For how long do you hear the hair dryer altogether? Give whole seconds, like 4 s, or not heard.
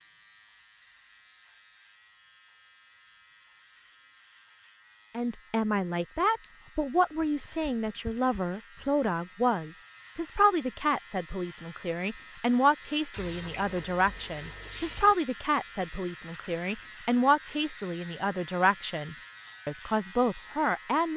not heard.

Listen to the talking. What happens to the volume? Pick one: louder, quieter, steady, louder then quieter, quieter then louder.
steady.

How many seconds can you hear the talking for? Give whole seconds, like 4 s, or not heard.
16 s.